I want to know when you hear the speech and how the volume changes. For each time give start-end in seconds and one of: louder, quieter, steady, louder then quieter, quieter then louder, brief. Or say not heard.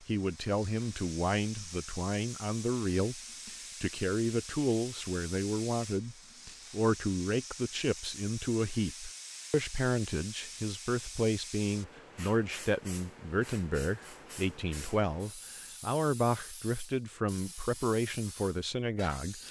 0.0-19.4 steady.